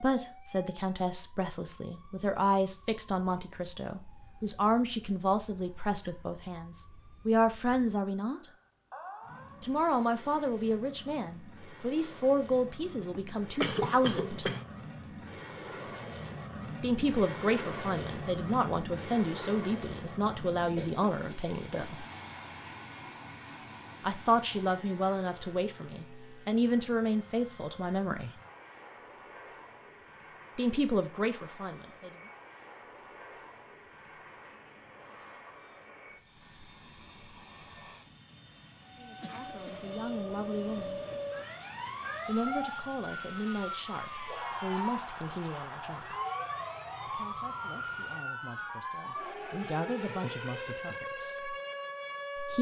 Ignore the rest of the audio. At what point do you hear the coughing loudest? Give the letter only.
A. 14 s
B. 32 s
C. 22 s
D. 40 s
A.